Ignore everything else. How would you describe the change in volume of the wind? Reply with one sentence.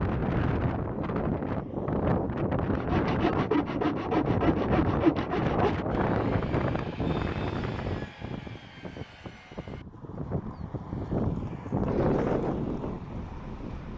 The volume of the wind goes down, then up.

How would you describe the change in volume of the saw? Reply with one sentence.
The loudness of the saw goes down.